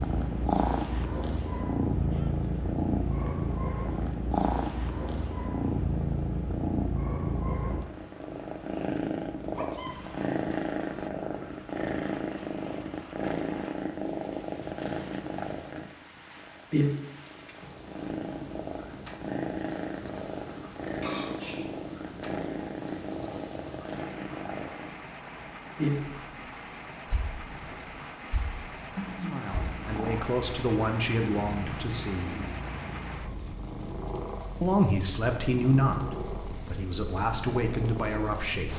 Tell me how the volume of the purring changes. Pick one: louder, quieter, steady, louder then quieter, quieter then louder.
quieter.